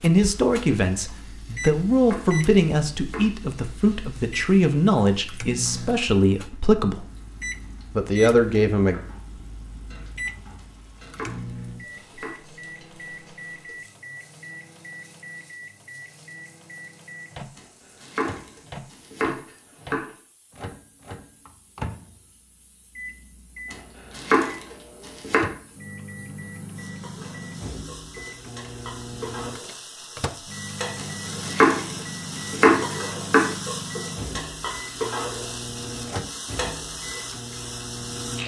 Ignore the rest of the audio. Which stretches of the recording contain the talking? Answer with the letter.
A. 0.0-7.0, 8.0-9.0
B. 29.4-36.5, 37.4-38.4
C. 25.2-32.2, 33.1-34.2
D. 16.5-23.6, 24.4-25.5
A.